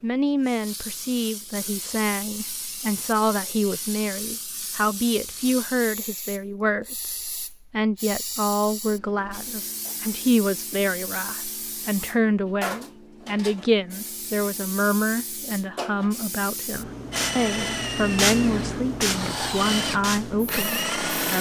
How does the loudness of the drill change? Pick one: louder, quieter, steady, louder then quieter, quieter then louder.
quieter then louder.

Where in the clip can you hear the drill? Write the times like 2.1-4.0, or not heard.
17.1-21.3.